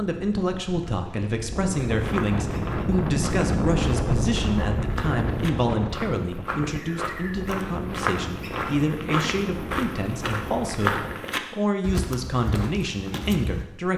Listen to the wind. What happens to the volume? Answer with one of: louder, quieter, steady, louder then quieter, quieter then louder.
louder then quieter.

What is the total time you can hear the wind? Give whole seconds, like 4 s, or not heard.
11 s.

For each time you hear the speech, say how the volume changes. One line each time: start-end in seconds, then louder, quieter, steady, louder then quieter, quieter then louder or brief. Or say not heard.
0.0-13.9 steady.